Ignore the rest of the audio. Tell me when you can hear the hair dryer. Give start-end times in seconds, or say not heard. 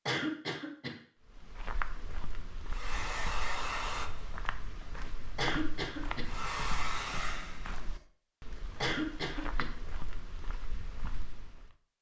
2.7-4.5, 6.2-8.1.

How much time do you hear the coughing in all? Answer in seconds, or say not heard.
3 s.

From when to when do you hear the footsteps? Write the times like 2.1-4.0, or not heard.
1.3-11.7.